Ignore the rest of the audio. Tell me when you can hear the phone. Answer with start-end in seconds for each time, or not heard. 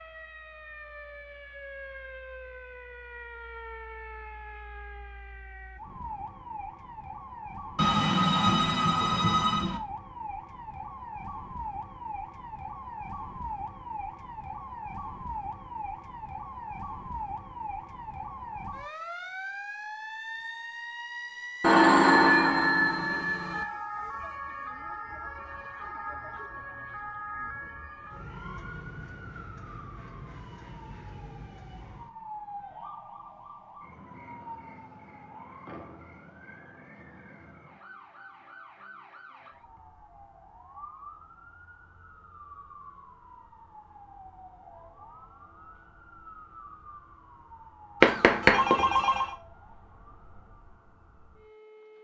7.8-9.8, 21.6-23.6, 48.0-49.2.